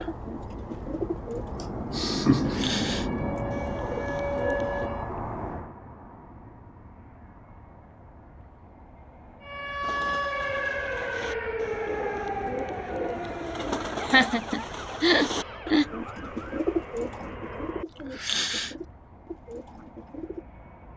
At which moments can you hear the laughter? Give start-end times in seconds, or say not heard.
1.6-2.8, 14.0-15.9.